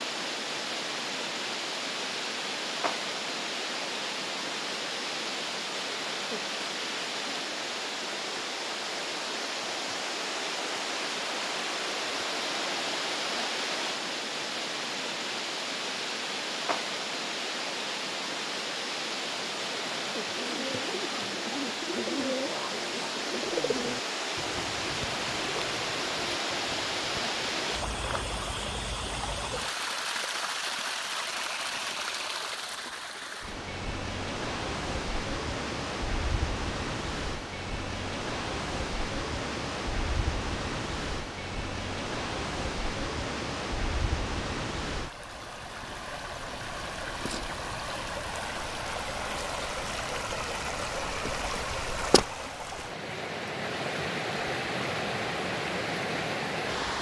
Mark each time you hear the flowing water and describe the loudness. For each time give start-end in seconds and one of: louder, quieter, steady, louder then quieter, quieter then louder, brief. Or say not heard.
0.0-56.9 steady.